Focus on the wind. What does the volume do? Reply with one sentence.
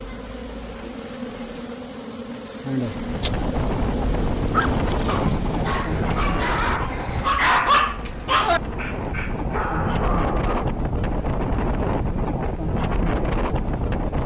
The volume of the wind goes down, then up.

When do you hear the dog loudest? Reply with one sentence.
The loudest moment of the dog is at 8 seconds.